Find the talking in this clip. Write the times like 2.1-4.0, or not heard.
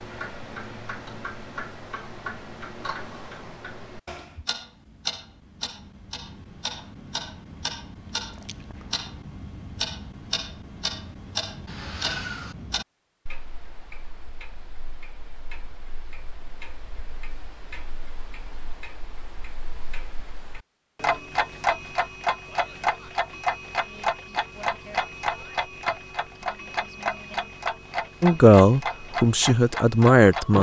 28.2-30.5.